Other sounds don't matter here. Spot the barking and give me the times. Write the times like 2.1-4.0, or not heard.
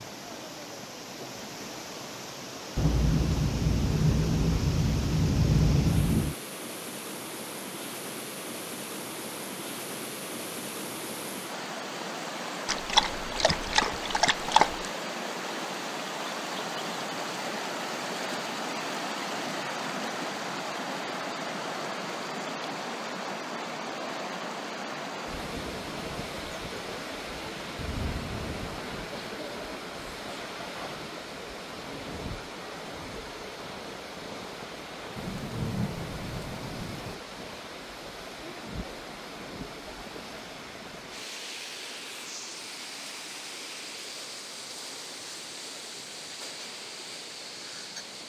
12.7-14.9.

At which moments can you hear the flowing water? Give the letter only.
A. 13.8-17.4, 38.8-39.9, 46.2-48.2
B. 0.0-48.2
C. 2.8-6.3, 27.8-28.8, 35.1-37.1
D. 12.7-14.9
B.